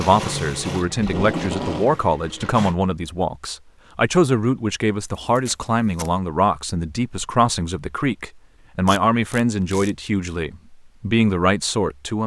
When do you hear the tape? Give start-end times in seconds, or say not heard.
1.0-2.0, 5.3-6.1, 8.8-9.9.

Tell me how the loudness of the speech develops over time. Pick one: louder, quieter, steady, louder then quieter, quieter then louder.
steady.